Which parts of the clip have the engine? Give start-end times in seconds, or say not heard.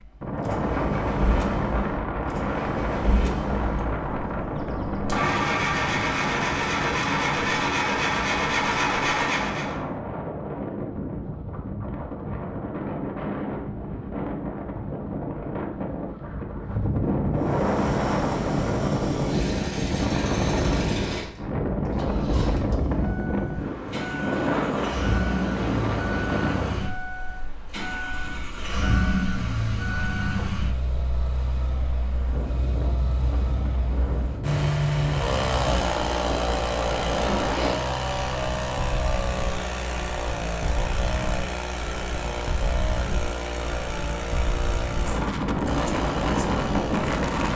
0.0-9.8, 17.4-47.5.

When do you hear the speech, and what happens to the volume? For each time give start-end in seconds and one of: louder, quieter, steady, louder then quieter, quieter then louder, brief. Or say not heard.
not heard.